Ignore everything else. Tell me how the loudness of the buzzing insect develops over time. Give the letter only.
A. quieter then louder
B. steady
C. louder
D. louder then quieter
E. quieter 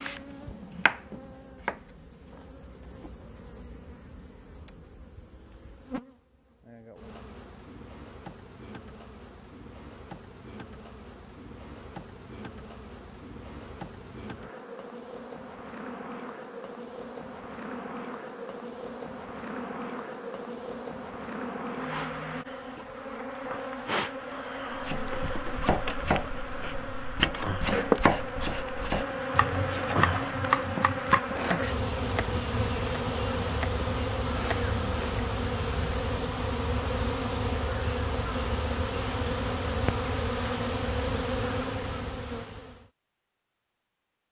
C.